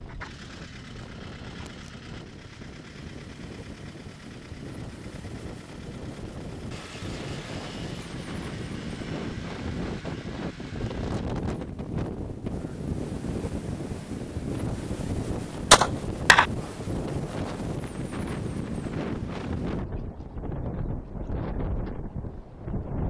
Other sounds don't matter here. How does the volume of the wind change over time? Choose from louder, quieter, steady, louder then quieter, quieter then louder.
louder.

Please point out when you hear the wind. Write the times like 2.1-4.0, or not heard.
0.0-23.0.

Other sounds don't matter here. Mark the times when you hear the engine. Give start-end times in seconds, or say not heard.
0.0-11.3.